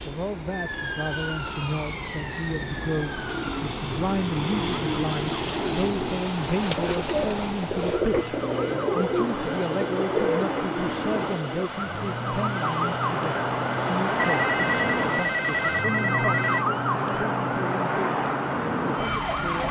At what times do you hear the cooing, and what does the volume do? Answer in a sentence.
You can hear the cooing from 2.5 to 11.7 s, getting louder.